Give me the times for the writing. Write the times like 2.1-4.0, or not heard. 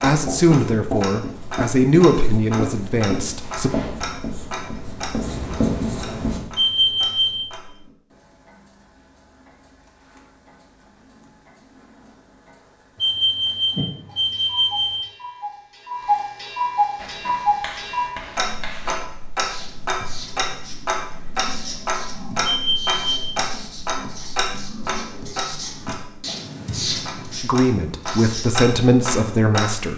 0.0-6.4, 16.9-28.6.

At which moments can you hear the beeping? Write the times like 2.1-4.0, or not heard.
6.5-7.3, 13.0-14.9, 22.4-23.2.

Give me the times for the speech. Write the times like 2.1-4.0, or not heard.
0.0-3.7, 27.4-29.9.